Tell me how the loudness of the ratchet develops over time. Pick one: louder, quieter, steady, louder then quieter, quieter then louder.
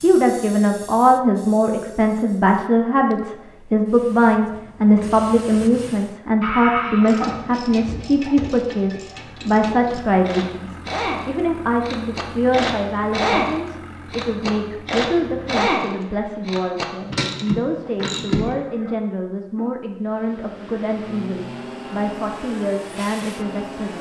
louder.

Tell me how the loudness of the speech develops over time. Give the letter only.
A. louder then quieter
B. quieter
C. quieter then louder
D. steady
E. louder
B.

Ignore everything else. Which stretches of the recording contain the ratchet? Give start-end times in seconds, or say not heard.
7.0-18.6.